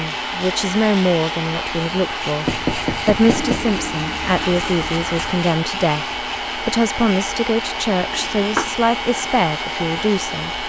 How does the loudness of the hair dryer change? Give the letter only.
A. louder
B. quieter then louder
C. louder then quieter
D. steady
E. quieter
D.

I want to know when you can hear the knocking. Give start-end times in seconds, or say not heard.
2.5-3.8, 8.1-8.7.